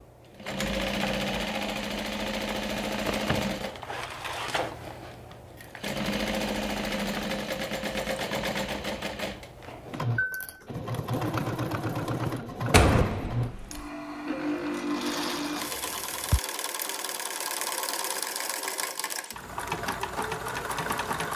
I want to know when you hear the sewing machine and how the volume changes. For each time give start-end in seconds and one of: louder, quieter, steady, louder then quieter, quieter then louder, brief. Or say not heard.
0.0-21.3 steady.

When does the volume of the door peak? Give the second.
13 s.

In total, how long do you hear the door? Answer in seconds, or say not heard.
2 s.